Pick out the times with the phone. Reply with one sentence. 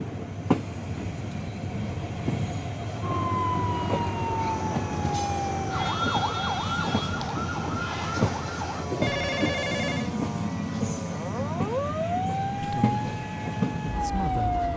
You can hear the phone from 9.0 to 10.1 s.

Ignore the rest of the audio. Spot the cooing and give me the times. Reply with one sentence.
You can't hear the cooing here.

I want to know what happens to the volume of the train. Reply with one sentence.
The volume of the train stays about the same.